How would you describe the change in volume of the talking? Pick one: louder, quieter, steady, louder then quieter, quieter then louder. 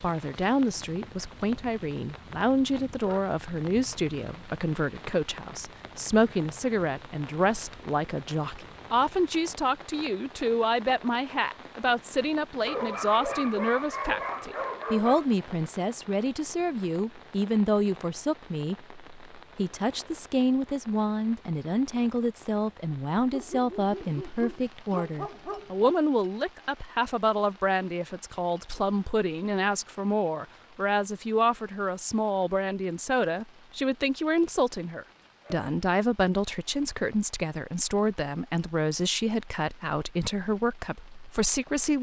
steady.